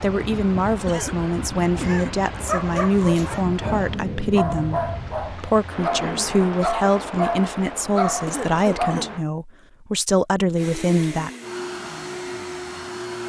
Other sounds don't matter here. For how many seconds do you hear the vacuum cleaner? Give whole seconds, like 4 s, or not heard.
3 s.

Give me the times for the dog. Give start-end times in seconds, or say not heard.
2.3-9.1.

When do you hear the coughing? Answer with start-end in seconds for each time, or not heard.
0.8-2.3, 8.2-9.2.